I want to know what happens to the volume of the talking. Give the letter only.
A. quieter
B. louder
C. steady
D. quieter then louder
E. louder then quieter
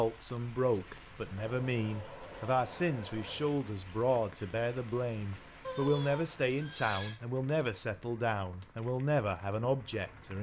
C.